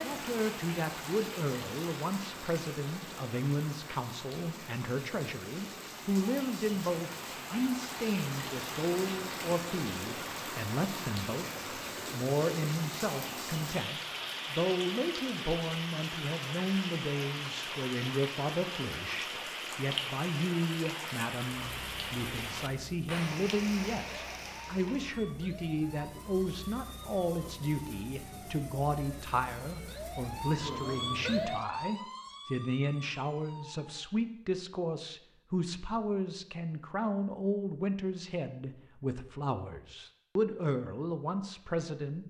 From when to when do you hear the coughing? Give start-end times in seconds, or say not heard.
not heard.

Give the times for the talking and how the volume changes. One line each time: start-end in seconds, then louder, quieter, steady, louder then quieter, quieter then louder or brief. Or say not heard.
0.0-42.2 steady.